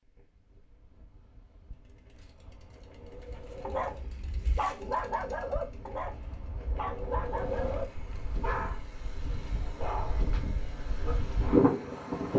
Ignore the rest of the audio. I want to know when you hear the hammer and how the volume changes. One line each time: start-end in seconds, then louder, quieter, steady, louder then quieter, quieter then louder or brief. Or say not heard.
not heard.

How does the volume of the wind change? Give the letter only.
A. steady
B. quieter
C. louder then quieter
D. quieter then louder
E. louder
E.